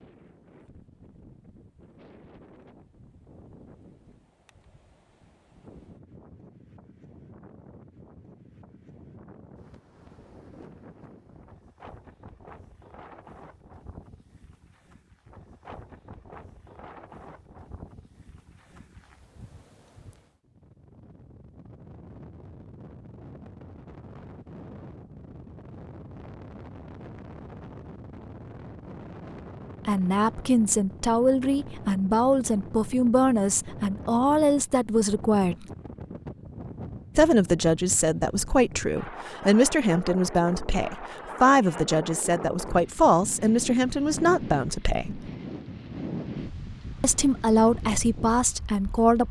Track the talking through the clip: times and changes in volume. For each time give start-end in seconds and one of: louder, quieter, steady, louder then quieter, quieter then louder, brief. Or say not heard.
29.9-35.6 steady
37.1-45.3 steady
47.0-49.2 brief.